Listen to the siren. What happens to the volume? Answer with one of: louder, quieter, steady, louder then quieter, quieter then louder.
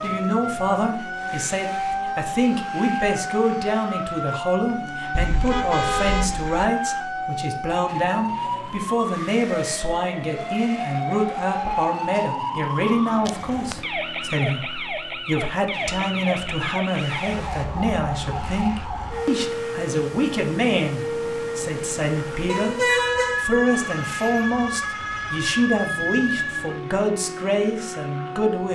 steady.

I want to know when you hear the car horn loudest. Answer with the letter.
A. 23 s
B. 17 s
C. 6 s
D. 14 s
A.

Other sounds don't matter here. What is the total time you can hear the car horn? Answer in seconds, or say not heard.
3 s.